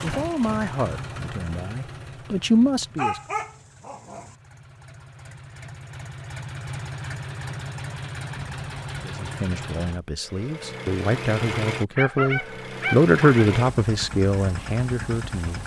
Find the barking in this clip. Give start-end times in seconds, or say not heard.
3.0-4.3, 11.9-13.5.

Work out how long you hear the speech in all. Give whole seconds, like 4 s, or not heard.
10 s.